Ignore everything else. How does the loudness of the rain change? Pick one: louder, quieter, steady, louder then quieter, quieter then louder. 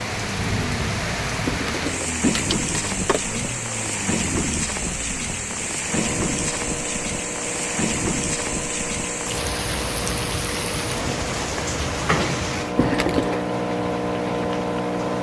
steady.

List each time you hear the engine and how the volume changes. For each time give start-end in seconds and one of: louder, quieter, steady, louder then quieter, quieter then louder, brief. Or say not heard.
0.0-15.1 louder.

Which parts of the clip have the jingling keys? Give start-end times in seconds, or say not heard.
1.4-3.2, 12.8-13.4.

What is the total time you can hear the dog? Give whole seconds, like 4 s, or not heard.
not heard.